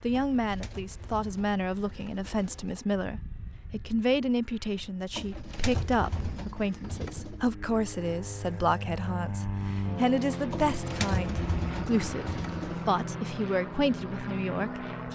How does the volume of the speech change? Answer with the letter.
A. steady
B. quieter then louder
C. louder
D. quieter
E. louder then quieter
A.